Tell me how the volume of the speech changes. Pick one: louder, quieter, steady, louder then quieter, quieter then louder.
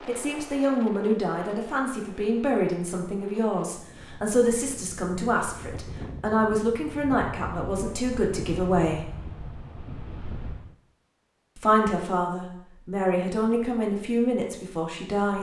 steady.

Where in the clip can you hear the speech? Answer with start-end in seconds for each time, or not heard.
0.1-9.1, 11.6-15.3.